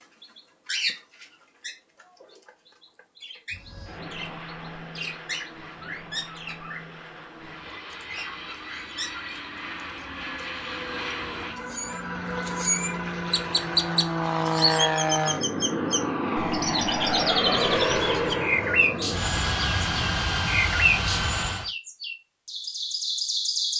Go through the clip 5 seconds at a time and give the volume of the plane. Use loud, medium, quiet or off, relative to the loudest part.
quiet, quiet, loud, loud, loud.